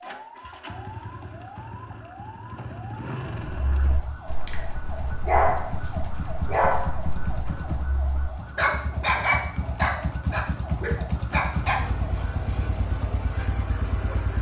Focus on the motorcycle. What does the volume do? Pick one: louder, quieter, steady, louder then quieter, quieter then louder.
louder.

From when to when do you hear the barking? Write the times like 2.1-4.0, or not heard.
3.6-12.2.